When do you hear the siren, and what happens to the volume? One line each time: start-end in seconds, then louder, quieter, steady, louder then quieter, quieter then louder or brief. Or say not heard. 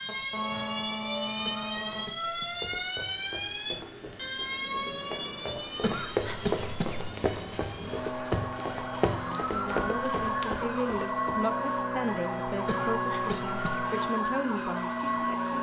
0.0-15.5 quieter then louder.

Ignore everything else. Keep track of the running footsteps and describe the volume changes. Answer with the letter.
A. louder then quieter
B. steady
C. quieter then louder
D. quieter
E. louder
E.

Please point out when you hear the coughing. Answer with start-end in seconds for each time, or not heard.
1.4-2.5, 5.8-7.1, 12.7-13.8.